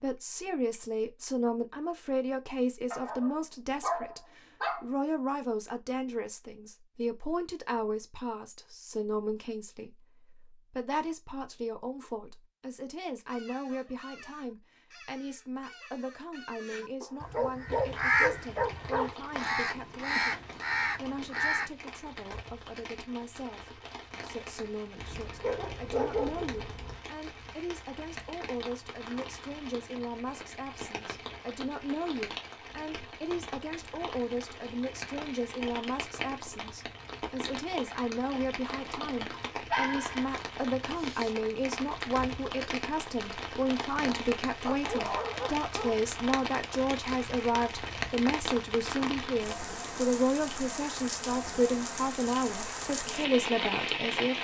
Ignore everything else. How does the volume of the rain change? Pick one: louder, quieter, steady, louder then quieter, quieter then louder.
louder.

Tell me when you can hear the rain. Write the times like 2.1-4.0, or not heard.
17.6-54.3.